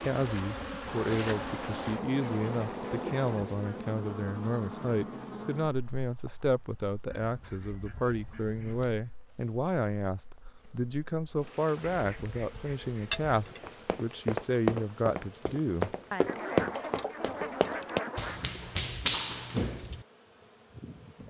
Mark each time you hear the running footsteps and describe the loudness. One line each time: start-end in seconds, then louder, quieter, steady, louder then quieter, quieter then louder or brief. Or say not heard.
13.6-20.1 steady.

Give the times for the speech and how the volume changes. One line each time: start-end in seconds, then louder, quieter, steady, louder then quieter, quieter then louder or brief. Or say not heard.
0.0-16.2 steady.